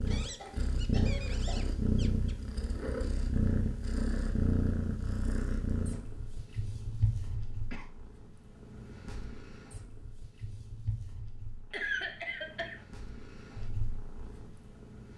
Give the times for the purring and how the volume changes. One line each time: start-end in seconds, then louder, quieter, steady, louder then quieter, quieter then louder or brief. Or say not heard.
0.0-15.1 quieter.